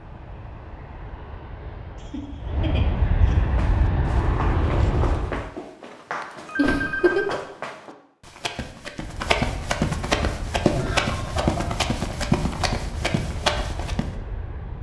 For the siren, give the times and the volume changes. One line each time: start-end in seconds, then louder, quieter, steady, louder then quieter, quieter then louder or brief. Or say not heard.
not heard.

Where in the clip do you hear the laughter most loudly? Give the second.
7 s.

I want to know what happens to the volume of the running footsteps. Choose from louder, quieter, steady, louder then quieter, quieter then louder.
louder.